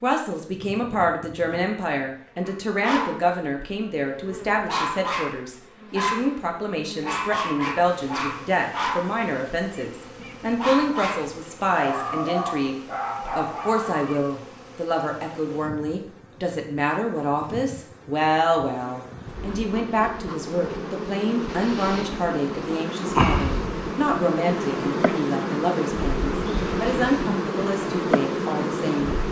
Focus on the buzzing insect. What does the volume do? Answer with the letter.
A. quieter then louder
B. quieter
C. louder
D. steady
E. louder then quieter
C.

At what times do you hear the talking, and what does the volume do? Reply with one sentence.
You can hear the talking from 0.0 to 29.1 s, at a steady volume.